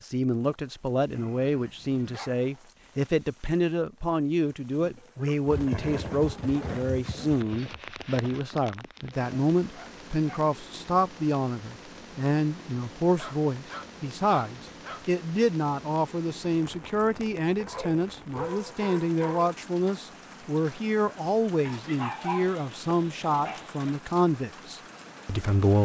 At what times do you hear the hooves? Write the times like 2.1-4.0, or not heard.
5.5-8.6.